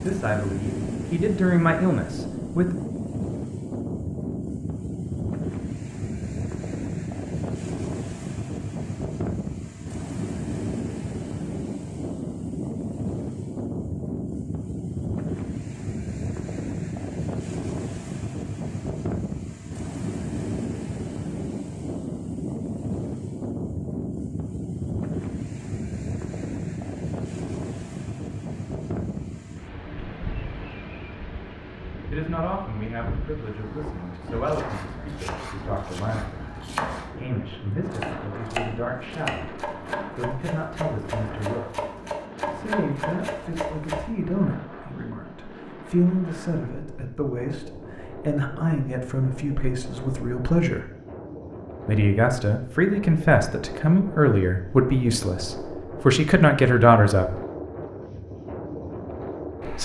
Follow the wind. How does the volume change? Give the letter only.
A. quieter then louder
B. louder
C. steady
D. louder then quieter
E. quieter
E.